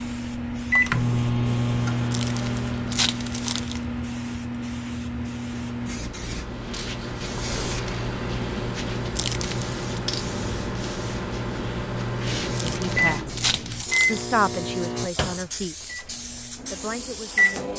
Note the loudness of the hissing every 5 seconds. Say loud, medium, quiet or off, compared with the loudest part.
loud, loud, loud, medium.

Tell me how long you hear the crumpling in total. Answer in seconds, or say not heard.
4 s.